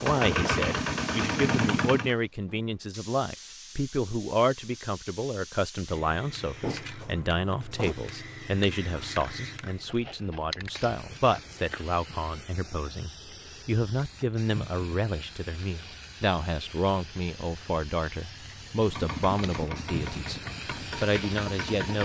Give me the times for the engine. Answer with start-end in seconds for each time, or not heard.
0.0-2.1, 18.8-21.9.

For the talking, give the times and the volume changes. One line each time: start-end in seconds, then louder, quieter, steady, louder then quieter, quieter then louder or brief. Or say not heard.
0.0-21.9 steady.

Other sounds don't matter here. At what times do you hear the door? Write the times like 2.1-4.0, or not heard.
6.5-8.0.